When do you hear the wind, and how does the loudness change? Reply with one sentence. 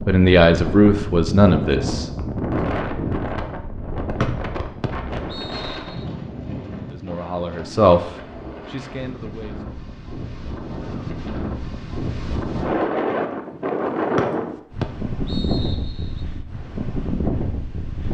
You can hear the wind from 0.0 to 18.0 s, getting quieter then louder.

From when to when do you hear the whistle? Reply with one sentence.
The whistle can be heard from 4.2 to 6.0 s and from 14.2 to 16.2 s.